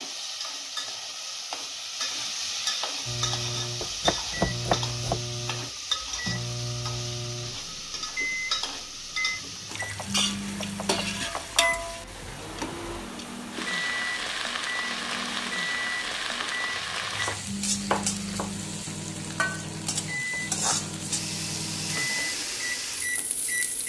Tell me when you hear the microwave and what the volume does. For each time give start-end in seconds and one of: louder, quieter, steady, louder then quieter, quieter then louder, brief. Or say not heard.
3.0-23.8 steady.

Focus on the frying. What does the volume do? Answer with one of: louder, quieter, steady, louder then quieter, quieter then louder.
steady.